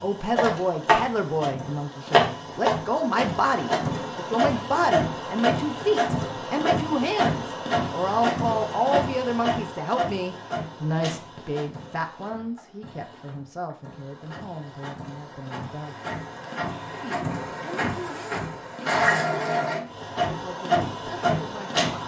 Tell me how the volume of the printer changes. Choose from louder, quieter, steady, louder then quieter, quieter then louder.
quieter then louder.